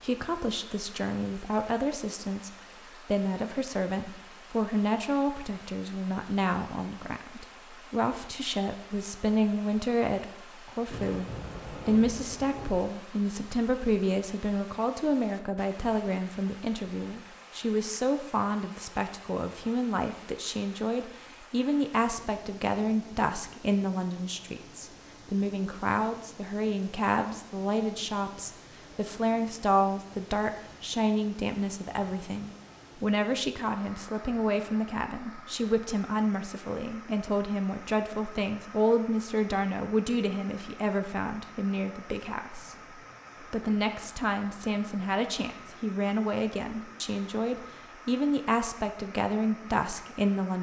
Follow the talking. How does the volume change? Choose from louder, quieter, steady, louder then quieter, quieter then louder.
steady.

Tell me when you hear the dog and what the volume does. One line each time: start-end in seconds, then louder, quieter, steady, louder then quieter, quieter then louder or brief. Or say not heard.
not heard.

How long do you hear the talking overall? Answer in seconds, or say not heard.
50 s.